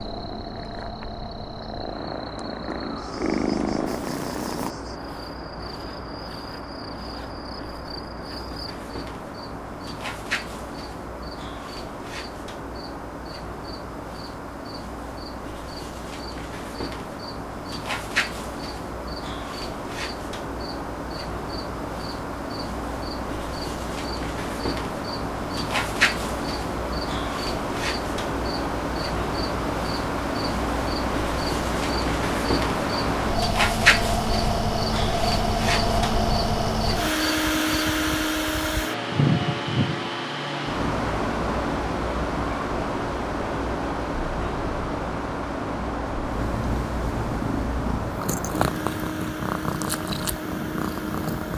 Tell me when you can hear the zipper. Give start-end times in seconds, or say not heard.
not heard.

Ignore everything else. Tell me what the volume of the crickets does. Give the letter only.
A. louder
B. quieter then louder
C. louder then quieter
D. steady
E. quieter
A.